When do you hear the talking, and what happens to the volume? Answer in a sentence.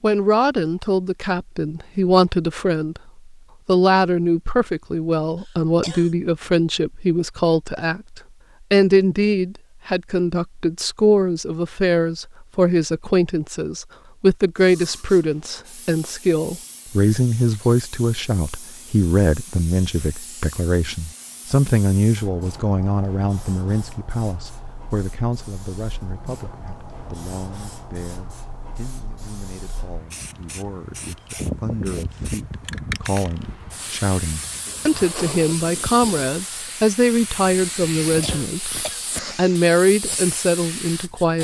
The talking can be heard from 0.0 to 41.3 s, getting quieter then louder.